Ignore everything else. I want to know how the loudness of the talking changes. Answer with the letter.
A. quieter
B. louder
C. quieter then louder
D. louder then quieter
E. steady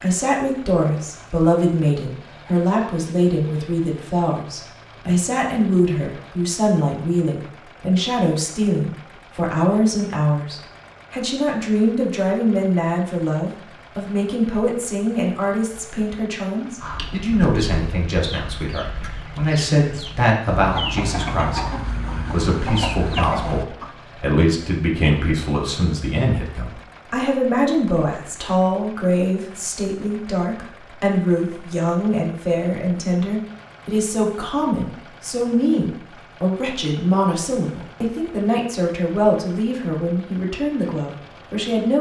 E.